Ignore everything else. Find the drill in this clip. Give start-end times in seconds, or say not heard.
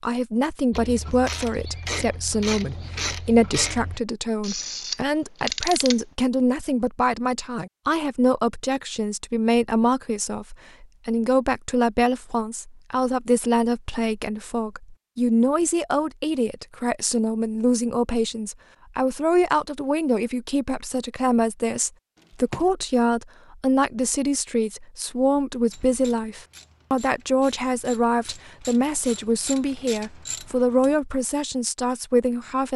not heard.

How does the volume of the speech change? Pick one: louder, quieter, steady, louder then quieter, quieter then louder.
steady.